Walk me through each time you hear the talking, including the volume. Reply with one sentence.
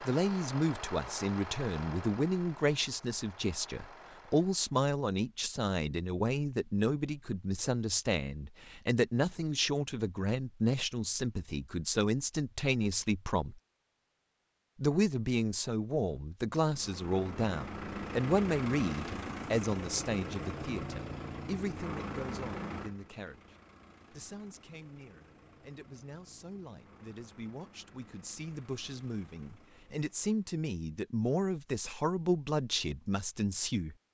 You can hear the talking from 0.0 to 13.6 s, at a steady volume; and from 14.8 to 34.0 s, getting quieter then louder.